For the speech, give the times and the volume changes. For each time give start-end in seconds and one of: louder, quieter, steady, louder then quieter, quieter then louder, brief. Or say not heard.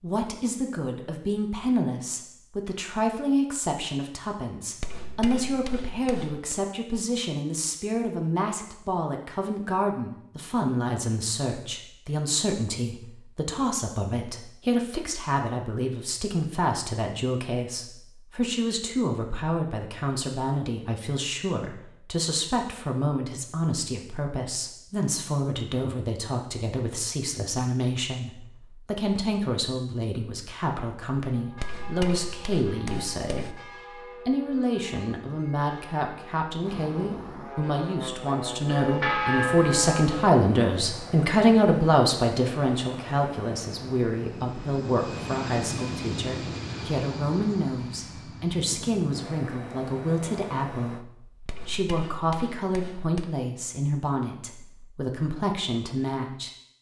0.0-33.6 steady
34.2-56.5 louder then quieter.